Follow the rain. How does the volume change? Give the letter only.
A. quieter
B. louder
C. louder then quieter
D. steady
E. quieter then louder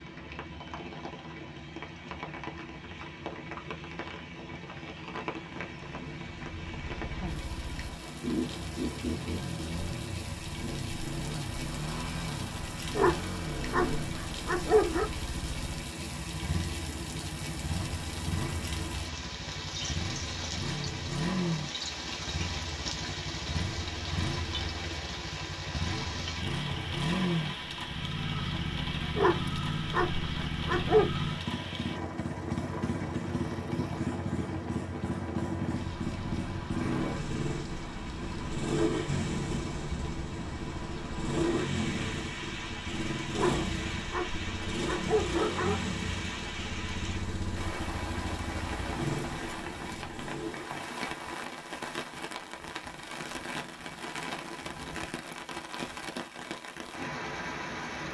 D.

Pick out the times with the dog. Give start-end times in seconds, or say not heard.
12.9-15.1, 29.1-31.1, 43.3-45.9.